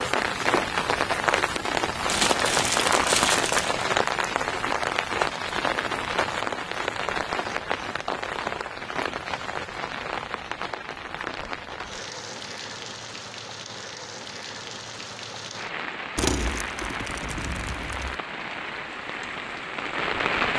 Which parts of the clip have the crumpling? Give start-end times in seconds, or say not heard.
2.0-3.9, 11.4-11.9, 16.1-18.1.